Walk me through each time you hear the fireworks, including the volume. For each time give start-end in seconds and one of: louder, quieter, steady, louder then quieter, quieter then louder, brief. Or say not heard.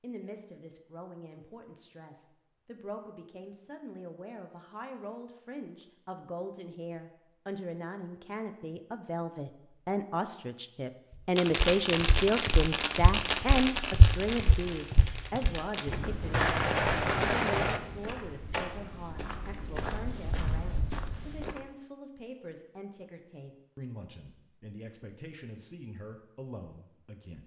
11.3-17.8 quieter then louder.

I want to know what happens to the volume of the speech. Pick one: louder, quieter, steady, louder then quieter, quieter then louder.
louder then quieter.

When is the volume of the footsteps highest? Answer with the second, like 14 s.
14 s.